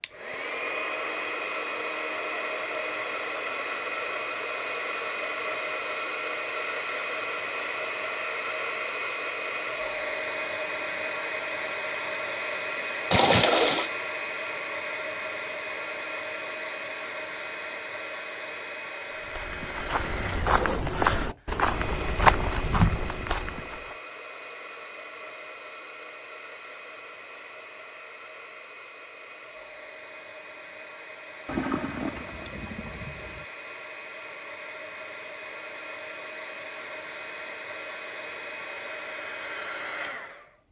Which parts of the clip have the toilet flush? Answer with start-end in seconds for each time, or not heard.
13.1-13.9, 31.4-33.5.